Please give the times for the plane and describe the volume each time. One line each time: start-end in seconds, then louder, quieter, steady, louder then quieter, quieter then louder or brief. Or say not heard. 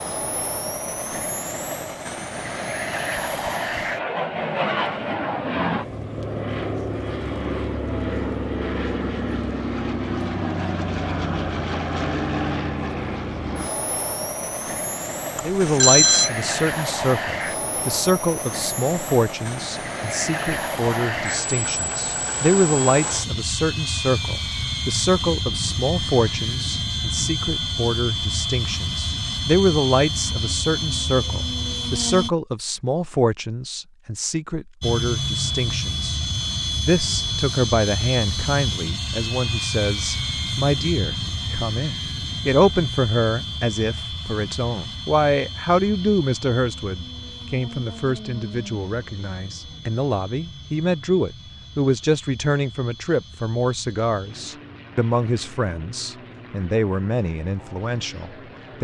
0.0-32.3 steady
34.8-58.7 quieter.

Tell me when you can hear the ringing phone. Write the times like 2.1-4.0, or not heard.
15.3-16.3.